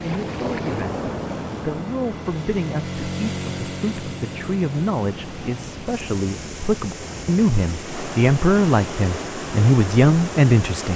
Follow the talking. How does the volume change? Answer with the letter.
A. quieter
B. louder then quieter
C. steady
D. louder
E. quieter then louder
D.